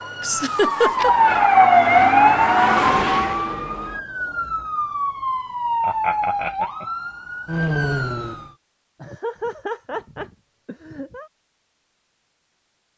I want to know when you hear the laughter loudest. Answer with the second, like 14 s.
1 s.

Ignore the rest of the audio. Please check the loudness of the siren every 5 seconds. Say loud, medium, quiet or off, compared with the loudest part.
loud, medium, off.